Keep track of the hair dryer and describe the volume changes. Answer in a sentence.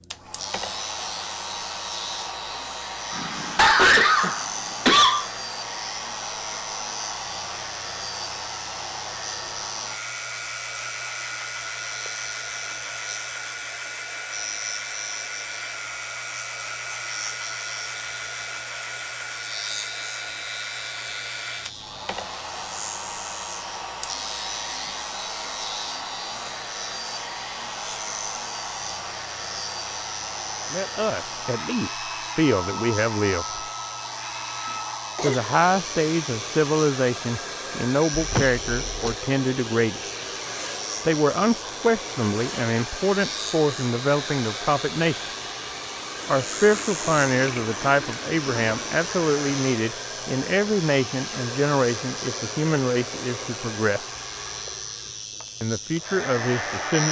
The volume of the hair dryer stays about the same.